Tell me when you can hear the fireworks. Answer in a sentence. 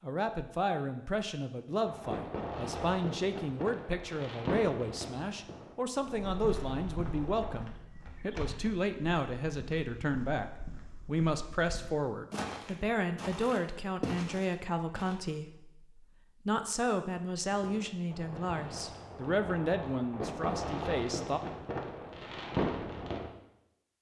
You can hear the fireworks from 1.9 to 7.7 s and from 17.5 to 23.3 s.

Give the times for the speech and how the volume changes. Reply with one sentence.
The speech can be heard from 0.0 to 21.4 s, at a steady volume.